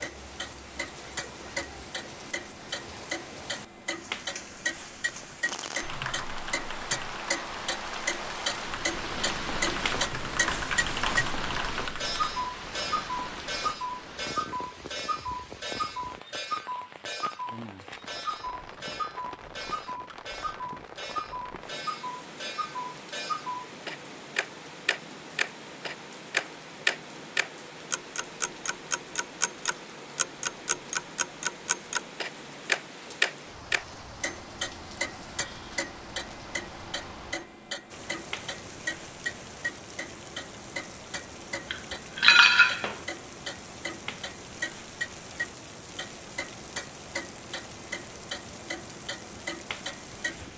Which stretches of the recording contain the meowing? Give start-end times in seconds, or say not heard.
not heard.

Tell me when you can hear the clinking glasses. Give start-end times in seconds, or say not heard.
41.7-43.0.